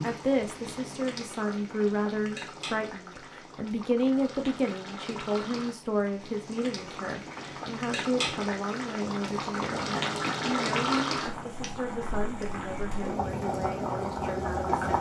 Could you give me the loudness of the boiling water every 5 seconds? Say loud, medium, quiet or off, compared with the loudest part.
medium, medium, loud.